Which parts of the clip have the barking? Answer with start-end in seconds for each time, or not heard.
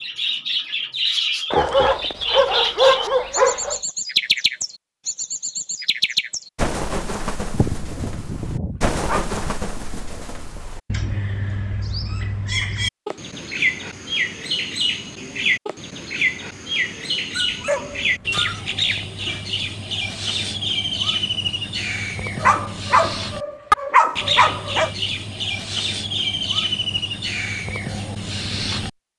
1.5-3.8, 7.5-9.5, 17.3-18.4, 22.4-24.9.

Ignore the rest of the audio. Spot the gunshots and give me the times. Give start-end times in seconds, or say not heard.
not heard.